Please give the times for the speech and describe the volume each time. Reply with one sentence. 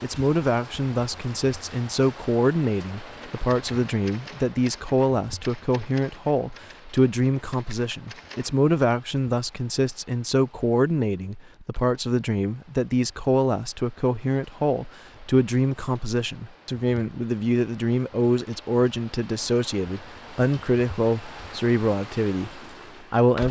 The speech can be heard from 0.0 to 23.4 s, at a steady volume.